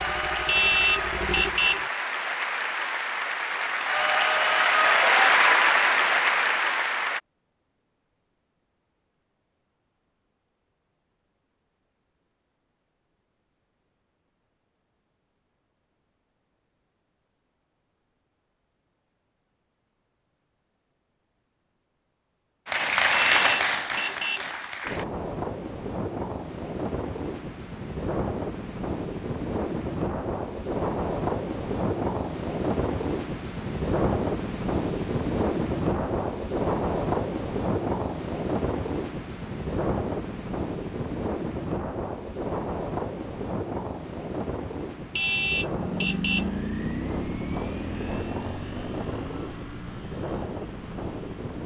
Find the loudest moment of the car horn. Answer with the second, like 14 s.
1 s.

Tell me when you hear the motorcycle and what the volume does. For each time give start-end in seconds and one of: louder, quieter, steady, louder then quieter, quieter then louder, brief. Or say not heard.
0.0-1.9 brief
45.6-51.5 quieter.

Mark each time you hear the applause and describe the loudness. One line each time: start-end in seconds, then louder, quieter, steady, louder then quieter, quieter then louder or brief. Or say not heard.
0.0-7.2 louder
22.6-25.1 brief.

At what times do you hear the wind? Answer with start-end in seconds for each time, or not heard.
24.8-51.6.